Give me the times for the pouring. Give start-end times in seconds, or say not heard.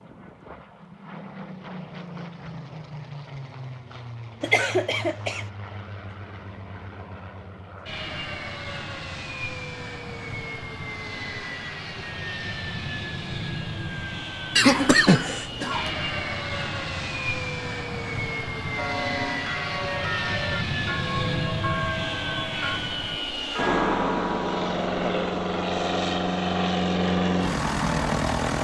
not heard.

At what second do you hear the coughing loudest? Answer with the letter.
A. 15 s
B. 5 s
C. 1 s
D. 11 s
A.